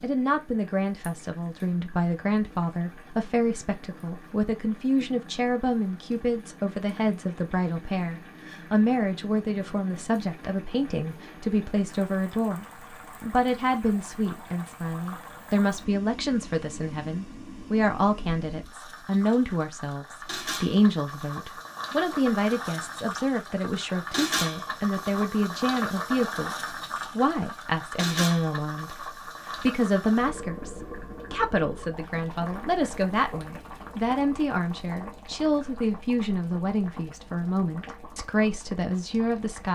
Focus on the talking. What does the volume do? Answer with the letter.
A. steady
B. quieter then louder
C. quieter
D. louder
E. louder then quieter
A.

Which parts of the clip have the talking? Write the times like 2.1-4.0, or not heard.
0.0-39.6.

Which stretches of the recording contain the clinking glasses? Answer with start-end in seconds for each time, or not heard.
not heard.